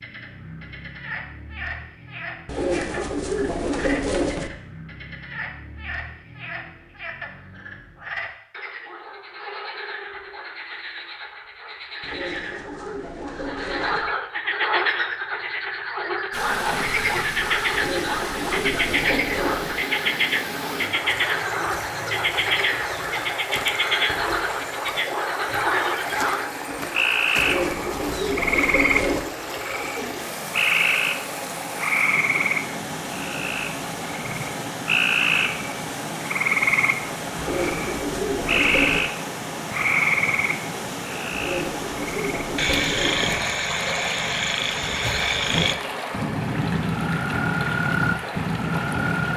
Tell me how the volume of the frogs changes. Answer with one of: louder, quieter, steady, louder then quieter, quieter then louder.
louder.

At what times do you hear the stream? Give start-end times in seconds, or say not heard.
16.3-49.3.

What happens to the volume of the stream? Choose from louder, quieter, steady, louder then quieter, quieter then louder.
steady.